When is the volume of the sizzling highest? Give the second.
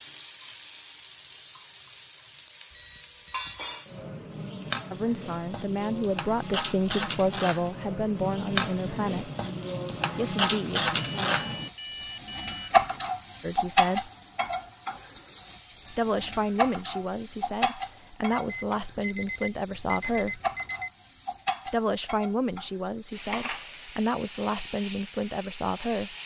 13 s.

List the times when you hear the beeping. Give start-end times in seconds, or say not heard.
2.7-3.8, 10.9-12.8, 18.3-20.9.